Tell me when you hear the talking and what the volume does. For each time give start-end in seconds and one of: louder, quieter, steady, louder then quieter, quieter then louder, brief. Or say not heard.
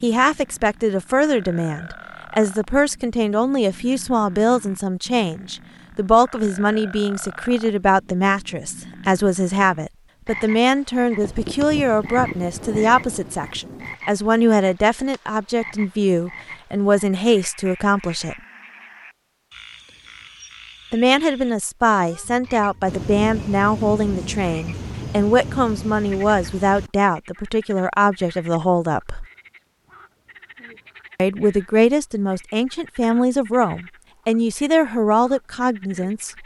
0.0-18.4 steady
20.9-29.2 steady
31.1-36.4 steady.